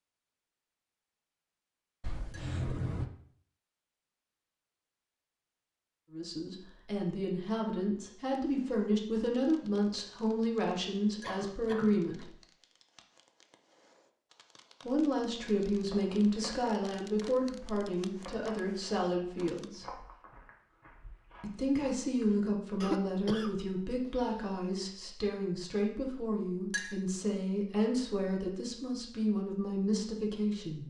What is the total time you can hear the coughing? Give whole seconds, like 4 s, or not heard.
4 s.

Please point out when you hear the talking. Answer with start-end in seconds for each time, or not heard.
6.1-12.3, 14.8-20.0, 21.4-30.8.